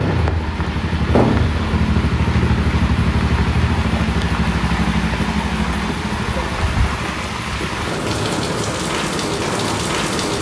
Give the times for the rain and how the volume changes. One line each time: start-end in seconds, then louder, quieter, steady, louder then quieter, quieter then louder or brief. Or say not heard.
0.0-10.3 louder.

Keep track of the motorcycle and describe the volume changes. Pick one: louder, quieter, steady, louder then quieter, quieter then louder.
quieter.